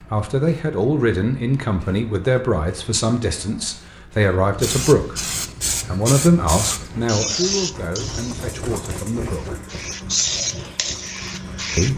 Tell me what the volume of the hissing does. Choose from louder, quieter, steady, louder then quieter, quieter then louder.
louder.